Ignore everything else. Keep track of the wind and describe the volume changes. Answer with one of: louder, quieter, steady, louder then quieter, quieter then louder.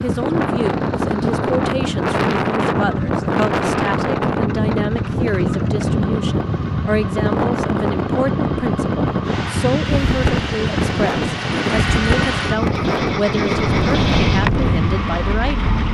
steady.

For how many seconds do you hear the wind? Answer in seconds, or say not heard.
16 s.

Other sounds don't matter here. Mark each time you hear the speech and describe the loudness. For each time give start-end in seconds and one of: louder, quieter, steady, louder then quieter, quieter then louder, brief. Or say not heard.
0.0-15.8 steady.